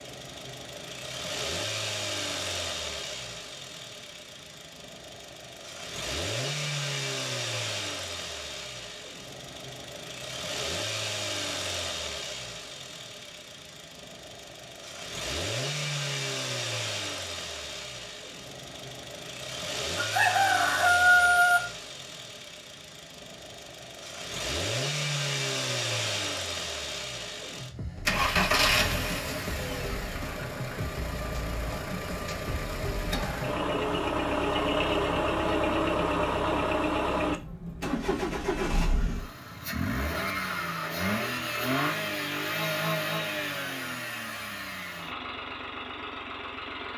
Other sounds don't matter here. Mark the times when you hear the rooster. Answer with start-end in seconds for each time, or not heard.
19.9-21.7.